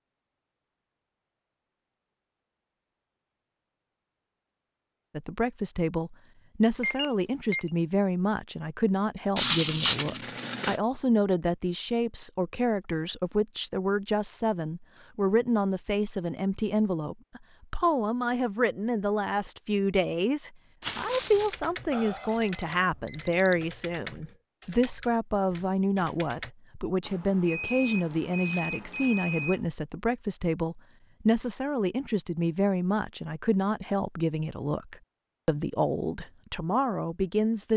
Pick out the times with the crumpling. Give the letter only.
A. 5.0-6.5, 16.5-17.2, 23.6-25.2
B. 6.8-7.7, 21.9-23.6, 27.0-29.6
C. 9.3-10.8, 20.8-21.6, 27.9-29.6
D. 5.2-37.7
C.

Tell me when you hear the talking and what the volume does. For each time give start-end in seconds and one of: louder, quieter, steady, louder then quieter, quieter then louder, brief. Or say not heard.
5.2-37.7 steady.